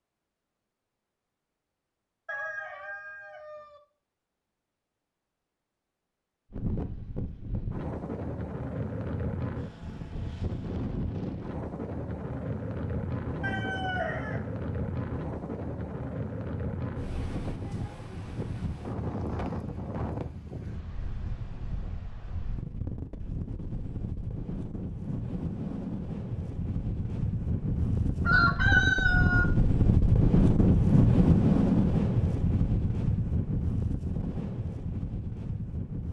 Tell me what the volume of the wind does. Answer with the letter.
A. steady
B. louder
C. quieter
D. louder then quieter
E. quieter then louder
B.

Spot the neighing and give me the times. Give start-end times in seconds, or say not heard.
not heard.